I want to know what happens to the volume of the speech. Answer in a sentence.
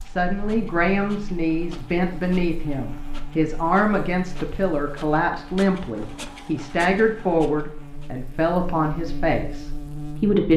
The loudness of the speech stays about the same.